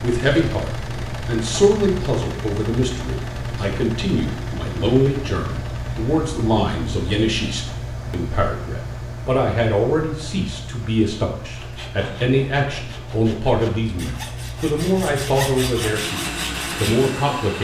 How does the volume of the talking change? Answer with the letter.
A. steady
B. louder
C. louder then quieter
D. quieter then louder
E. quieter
A.